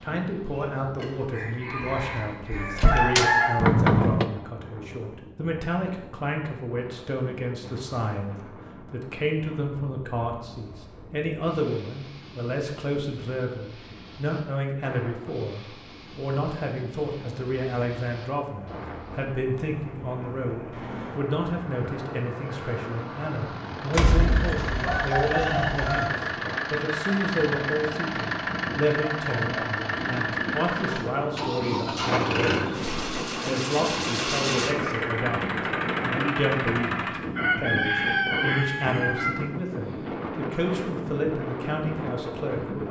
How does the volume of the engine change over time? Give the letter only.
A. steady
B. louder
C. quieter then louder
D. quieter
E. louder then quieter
B.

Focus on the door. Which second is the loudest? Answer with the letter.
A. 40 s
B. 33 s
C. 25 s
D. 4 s
D.